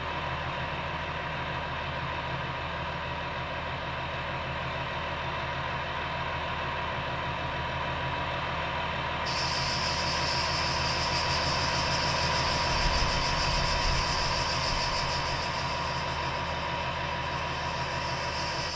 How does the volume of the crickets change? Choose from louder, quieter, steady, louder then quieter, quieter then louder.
quieter.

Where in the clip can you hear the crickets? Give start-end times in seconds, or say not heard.
9.2-18.7.